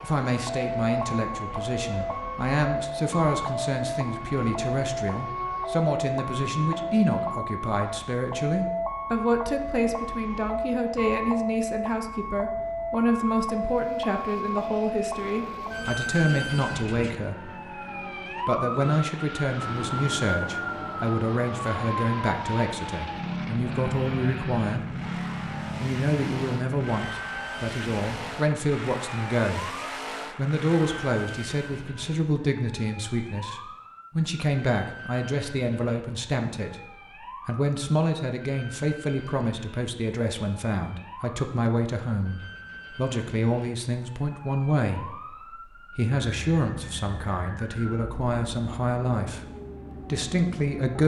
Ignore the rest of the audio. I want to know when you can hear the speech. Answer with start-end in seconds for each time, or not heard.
0.0-17.5, 18.4-24.9, 25.8-51.0.